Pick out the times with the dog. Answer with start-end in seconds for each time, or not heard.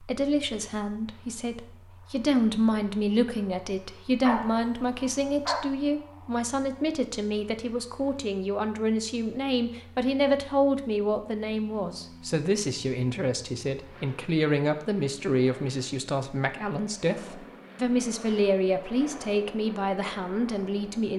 4.2-5.7.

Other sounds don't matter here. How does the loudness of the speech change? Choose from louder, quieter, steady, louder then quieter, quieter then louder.
steady.